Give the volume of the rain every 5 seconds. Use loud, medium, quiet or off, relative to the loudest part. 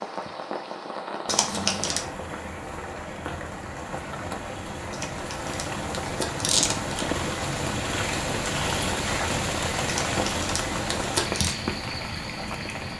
medium, loud, loud.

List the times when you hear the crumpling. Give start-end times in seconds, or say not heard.
1.2-2.0, 4.9-7.0, 9.8-11.6.